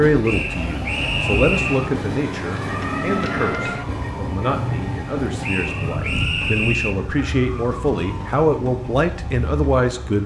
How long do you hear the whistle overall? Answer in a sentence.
You can hear the whistle for 3 seconds altogether.